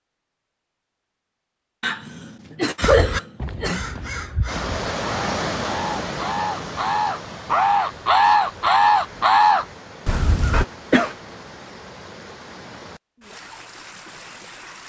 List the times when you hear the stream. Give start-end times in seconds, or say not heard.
4.5-14.8.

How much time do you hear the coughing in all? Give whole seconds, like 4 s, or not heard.
3 s.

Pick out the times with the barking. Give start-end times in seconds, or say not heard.
not heard.